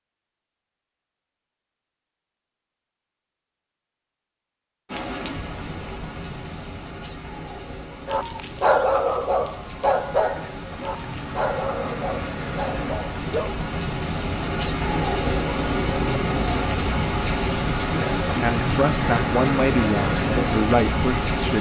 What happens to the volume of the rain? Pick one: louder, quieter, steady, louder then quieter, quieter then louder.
louder.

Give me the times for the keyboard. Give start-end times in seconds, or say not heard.
not heard.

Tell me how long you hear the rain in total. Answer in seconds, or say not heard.
17 s.